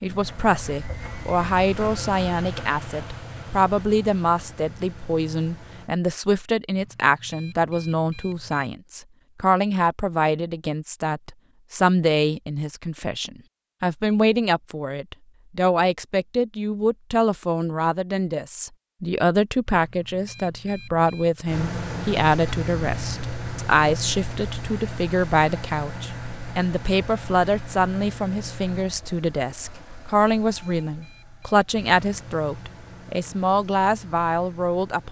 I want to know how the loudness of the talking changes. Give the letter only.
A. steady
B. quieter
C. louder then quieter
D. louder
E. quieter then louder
A.